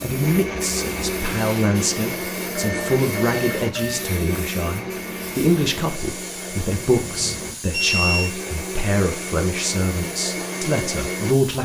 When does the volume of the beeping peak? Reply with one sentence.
The volume of the beeping peaks at 8 seconds.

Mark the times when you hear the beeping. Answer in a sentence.
You can hear the beeping from 2.5 to 4.1 s and from 6.9 to 8.3 s.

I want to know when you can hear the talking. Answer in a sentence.
The talking can be heard from 0.0 to 11.6 s.